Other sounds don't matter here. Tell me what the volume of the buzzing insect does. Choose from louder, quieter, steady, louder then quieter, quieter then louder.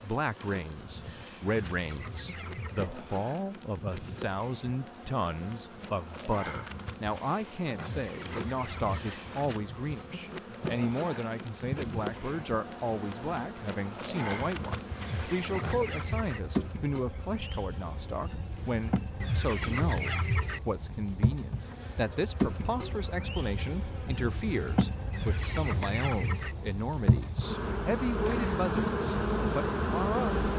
louder.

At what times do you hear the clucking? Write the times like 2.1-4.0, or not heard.
1.5-2.9, 8.0-9.2, 15.0-16.4, 19.2-20.6, 25.1-26.6.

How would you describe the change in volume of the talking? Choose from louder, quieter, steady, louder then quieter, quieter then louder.
steady.